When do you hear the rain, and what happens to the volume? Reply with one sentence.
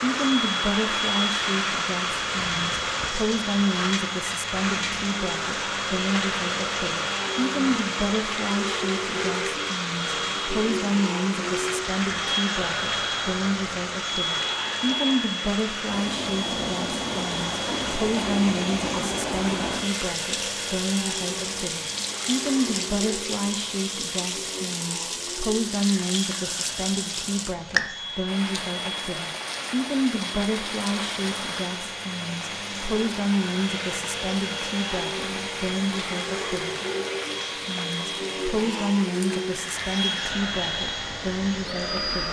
The rain can be heard from 0.0 to 42.2 s, getting quieter.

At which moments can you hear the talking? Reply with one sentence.
You can hear the talking from 0.0 to 36.8 s and from 37.6 to 42.2 s.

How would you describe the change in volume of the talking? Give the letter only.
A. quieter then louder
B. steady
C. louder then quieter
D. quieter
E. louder
B.